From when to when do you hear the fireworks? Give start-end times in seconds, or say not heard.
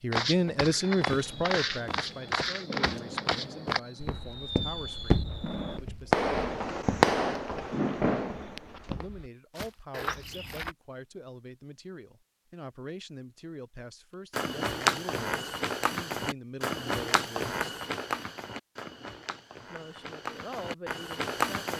0.7-9.1.